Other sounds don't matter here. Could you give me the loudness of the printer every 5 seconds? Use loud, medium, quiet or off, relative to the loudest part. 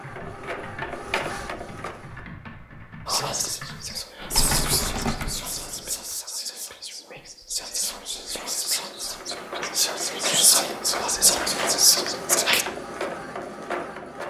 loud, medium, loud.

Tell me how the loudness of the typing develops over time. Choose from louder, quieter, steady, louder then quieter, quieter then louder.
louder.